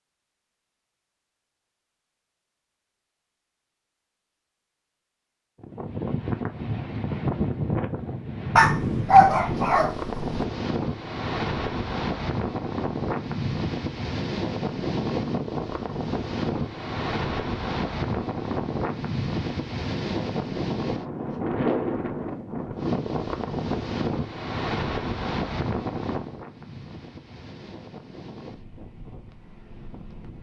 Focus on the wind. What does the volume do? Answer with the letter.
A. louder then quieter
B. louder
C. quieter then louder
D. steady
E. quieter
E.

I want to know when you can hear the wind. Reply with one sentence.
You can hear the wind from 5.6 to 30.3 s.